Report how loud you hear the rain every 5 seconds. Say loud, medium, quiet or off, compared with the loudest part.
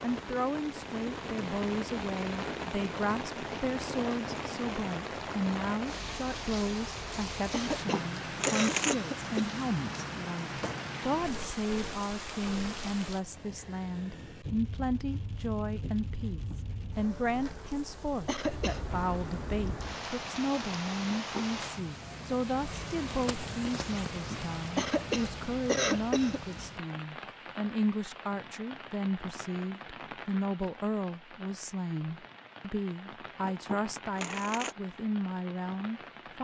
loud, loud, loud, medium, loud, medium, medium, medium.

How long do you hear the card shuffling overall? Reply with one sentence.
You can hear the card shuffling for 3 seconds altogether.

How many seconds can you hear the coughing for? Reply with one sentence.
You can hear the coughing for 4 seconds altogether.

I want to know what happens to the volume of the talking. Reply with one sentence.
The loudness of the talking stays about the same.